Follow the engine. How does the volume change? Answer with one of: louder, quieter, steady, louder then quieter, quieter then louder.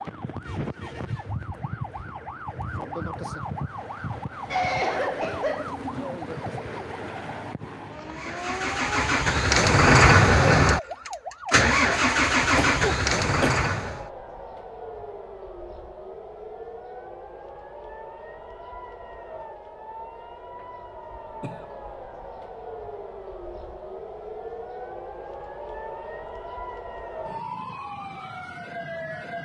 louder then quieter.